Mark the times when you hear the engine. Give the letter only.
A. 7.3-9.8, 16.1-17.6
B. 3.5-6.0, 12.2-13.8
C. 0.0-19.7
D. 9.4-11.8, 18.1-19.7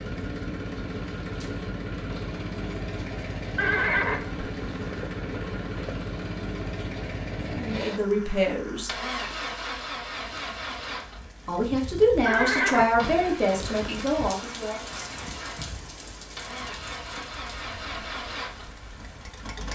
C.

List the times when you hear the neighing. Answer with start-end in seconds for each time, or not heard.
3.5-6.0, 12.2-13.8.